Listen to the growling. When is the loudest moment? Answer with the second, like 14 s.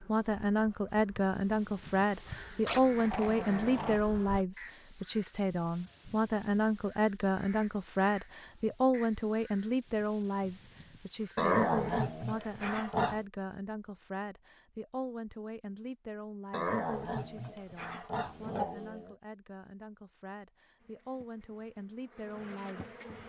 12 s.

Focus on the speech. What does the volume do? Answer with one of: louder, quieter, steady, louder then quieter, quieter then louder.
quieter.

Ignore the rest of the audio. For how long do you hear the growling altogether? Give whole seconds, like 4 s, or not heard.
6 s.